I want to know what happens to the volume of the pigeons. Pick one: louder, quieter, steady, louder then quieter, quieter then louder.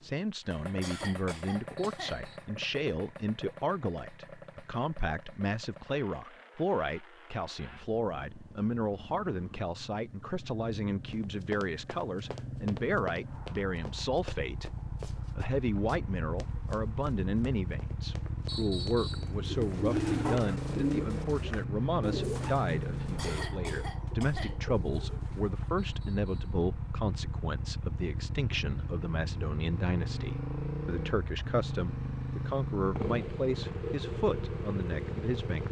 quieter.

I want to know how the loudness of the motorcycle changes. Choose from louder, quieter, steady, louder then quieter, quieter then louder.
louder.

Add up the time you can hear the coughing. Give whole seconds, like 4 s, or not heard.
3 s.